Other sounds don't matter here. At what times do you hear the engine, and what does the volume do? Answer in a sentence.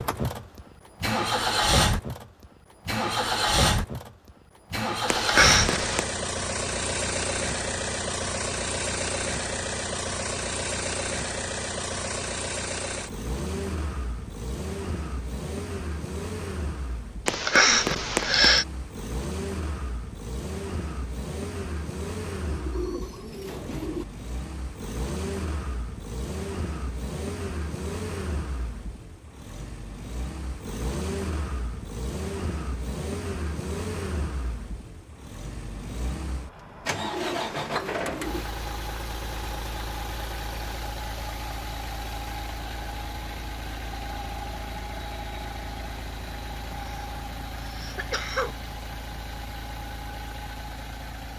The engine can be heard from 0.0 to 51.3 s, getting quieter.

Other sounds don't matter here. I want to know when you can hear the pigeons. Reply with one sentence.
You can hear the pigeons from 22.4 to 24.1 s and from 36.9 to 38.5 s.